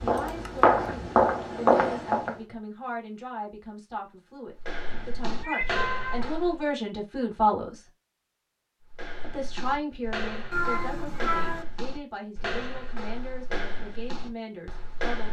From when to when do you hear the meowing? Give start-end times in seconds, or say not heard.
0.1-0.7, 5.3-6.3, 10.5-11.7.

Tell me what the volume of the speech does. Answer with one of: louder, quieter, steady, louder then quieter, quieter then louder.
louder then quieter.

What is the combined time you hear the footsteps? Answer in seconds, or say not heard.
11 s.